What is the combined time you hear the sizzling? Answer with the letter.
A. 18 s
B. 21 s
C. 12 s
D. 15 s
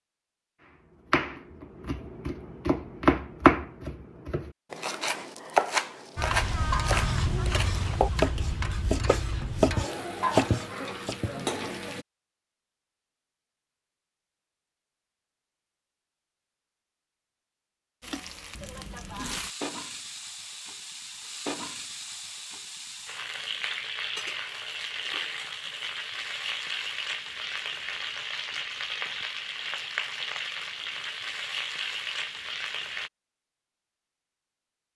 B.